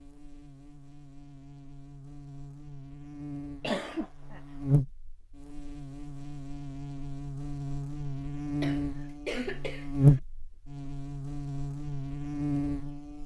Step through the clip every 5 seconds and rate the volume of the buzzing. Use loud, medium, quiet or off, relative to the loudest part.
medium, medium, loud.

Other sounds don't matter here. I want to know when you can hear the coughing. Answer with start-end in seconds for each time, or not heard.
3.6-4.4, 8.6-10.2.